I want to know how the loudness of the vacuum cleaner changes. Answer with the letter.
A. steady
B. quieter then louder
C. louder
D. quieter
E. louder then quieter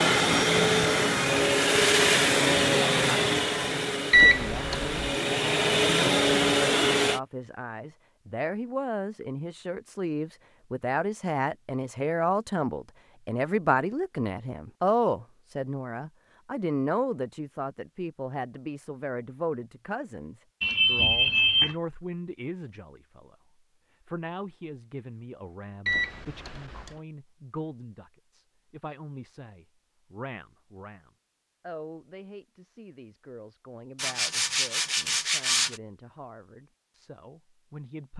B.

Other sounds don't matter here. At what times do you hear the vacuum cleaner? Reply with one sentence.
The vacuum cleaner can be heard from 0.0 to 7.2 s.